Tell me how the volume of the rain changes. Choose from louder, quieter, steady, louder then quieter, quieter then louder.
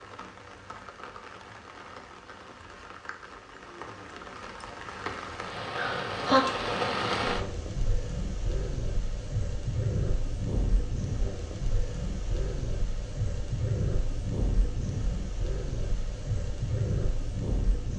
louder.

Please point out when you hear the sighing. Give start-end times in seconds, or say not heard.
5.8-6.4.